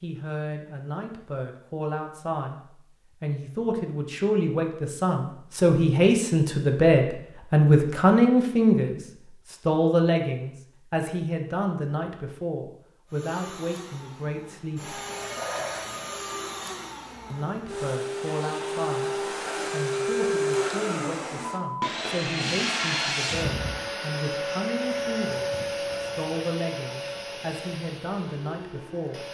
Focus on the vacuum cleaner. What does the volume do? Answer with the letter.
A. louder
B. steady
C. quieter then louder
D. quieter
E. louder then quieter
E.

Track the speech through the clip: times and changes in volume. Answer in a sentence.
You can hear the speech from 0.0 to 15.0 s, getting louder then quieter; and from 17.3 to 29.2 s, at a steady volume.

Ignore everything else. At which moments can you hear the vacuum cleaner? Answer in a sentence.
The vacuum cleaner can be heard from 13.1 to 29.2 s.